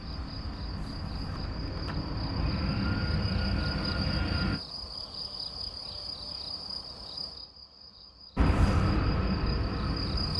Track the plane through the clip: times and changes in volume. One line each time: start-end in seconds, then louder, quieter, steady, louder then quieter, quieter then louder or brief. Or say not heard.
0.0-4.6 louder
8.3-10.3 brief.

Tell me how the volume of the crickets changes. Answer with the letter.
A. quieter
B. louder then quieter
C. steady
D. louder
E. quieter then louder
B.